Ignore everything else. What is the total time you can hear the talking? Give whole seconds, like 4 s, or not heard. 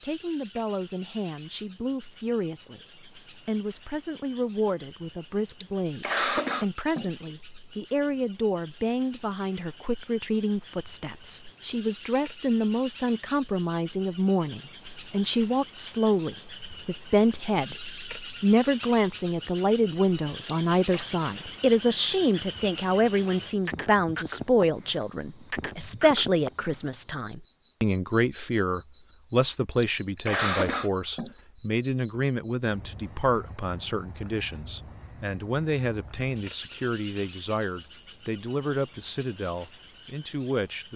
41 s.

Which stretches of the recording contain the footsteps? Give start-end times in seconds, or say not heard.
not heard.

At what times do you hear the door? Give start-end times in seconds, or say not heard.
not heard.